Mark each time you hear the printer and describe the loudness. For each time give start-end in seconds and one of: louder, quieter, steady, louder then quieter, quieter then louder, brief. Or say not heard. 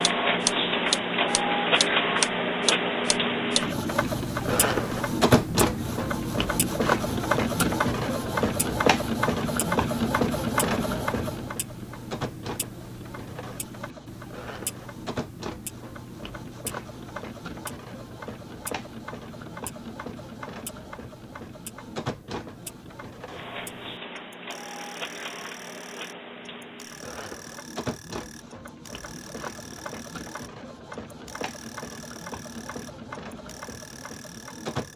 0.0-34.9 quieter.